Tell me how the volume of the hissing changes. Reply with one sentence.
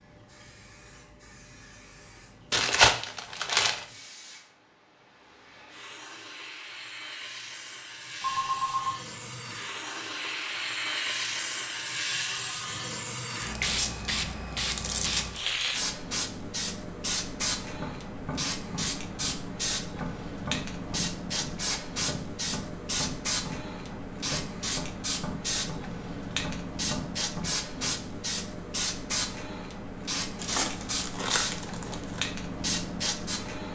The volume of the hissing goes up.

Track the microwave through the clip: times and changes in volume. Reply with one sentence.
The microwave can't be heard in this clip.